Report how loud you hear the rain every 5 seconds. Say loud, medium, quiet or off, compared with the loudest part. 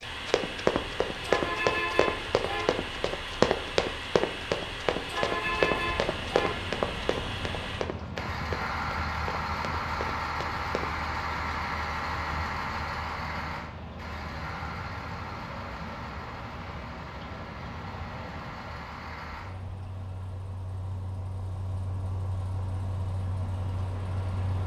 off, loud, loud, loud, medium.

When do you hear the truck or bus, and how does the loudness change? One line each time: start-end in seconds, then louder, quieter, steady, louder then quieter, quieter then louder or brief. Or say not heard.
0.0-24.6 quieter.